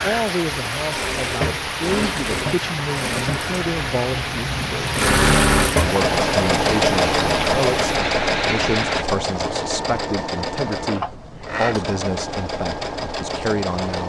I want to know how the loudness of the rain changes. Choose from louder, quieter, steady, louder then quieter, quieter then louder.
steady.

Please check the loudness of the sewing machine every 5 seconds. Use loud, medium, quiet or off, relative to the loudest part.
medium, loud, medium.